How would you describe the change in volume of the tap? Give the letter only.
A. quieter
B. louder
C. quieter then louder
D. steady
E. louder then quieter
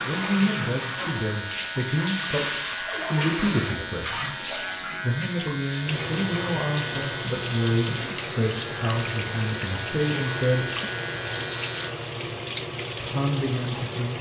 D.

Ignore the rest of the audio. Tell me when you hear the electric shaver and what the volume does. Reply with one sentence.
You can hear the electric shaver from 0.0 to 11.9 s, at a steady volume.